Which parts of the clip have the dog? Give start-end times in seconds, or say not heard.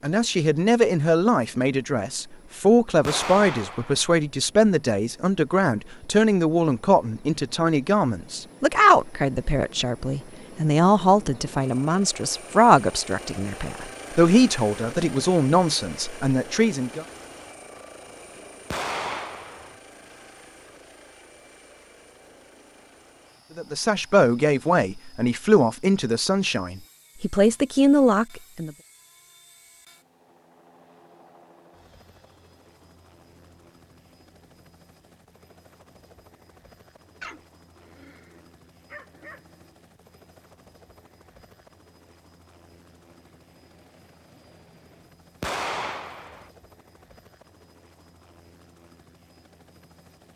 37.2-39.8.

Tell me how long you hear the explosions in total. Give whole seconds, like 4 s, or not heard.
3 s.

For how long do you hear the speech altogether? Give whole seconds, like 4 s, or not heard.
22 s.